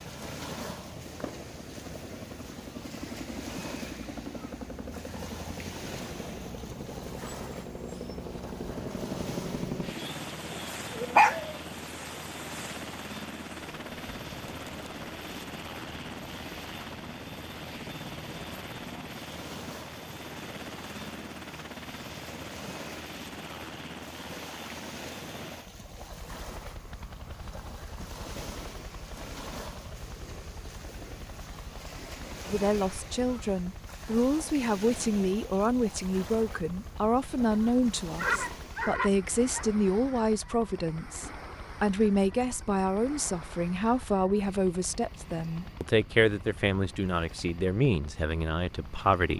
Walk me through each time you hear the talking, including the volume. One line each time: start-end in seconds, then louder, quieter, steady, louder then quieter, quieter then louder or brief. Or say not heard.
32.5-49.3 steady.